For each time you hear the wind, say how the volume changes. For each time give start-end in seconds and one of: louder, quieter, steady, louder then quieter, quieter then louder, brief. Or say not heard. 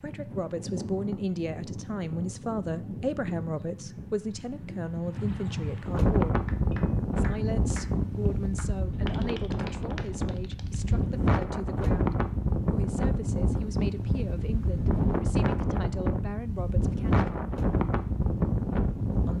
0.0-19.3 louder.